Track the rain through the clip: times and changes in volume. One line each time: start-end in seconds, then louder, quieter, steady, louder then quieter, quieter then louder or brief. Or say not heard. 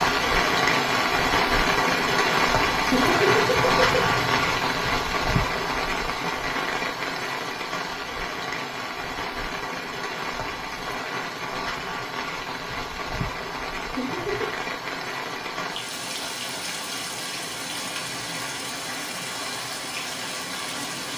0.0-21.1 quieter.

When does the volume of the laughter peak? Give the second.
3 s.